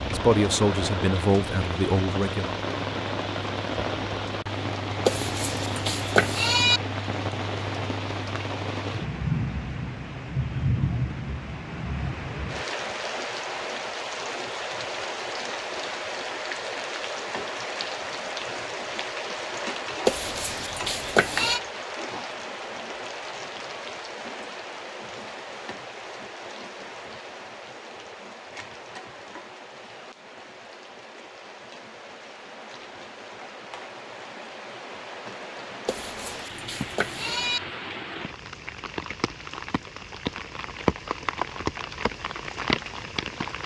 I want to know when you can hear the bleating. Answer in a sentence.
The bleating can be heard from 5.0 to 6.8 s, from 20.1 to 21.6 s and from 35.9 to 37.6 s.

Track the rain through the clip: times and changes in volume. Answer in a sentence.
You can hear the rain from 0.0 to 43.6 s, getting quieter then louder.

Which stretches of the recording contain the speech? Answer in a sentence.
You can hear the speech from 0.0 to 2.6 s.